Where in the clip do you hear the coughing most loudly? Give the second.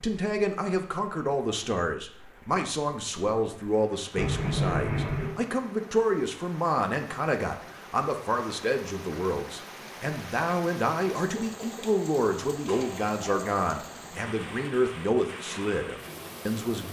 5 s.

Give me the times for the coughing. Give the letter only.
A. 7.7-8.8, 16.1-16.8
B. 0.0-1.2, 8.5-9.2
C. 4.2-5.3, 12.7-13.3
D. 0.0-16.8
C.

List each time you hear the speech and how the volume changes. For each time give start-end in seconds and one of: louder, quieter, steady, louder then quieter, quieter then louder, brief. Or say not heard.
0.0-16.8 steady.